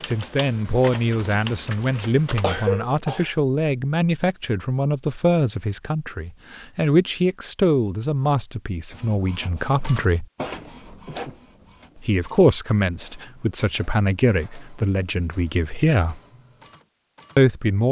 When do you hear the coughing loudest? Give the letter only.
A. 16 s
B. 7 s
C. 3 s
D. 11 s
C.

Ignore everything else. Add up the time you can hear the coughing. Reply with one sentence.
The coughing can be heard for 2 seconds in total.